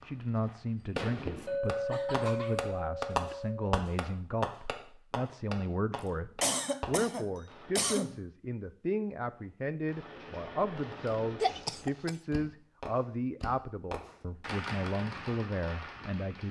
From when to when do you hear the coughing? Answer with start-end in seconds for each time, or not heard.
1.4-3.4, 6.4-8.2, 11.4-12.1.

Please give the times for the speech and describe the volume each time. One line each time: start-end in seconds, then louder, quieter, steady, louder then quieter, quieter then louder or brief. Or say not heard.
0.0-16.4 steady.